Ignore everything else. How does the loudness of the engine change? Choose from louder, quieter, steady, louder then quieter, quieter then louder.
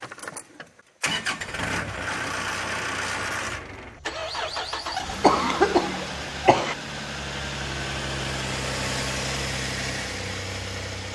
steady.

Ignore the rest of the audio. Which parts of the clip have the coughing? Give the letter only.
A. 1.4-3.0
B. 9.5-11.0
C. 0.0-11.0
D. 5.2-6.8
D.